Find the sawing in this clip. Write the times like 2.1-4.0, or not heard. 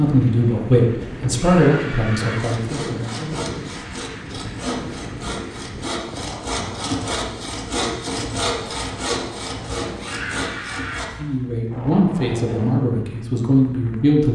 2.2-11.1.